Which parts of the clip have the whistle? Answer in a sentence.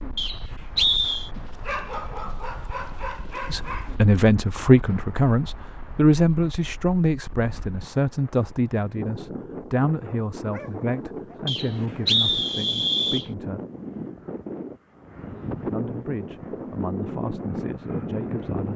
The whistle can be heard from 0.1 to 1.3 s and from 11.4 to 13.2 s.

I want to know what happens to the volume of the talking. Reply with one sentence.
The loudness of the talking goes down.